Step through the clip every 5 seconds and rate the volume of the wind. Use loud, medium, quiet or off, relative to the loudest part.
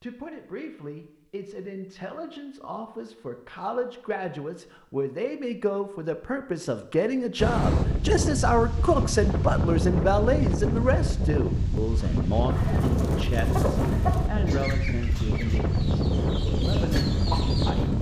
off, loud, loud, loud.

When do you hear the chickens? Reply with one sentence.
The chickens can be heard from 12.5 to 17.9 s.